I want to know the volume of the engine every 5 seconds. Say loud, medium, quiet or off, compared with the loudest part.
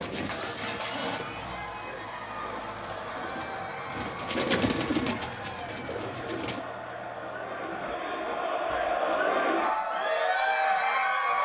loud, medium, off.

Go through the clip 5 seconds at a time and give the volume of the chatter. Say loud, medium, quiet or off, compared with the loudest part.
quiet, medium, loud.